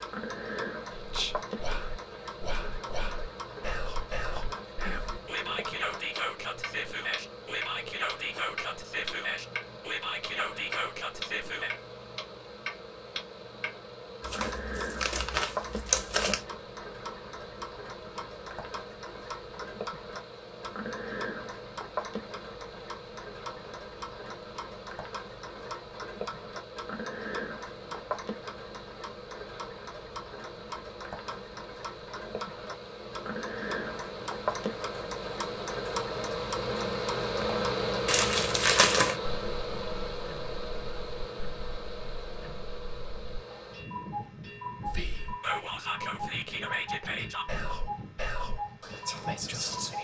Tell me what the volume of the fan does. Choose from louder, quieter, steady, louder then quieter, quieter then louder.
louder then quieter.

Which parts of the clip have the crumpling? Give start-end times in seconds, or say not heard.
14.2-16.4, 38.0-39.1.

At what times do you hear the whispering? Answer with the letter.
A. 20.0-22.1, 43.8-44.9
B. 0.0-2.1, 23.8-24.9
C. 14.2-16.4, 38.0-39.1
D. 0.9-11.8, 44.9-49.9
D.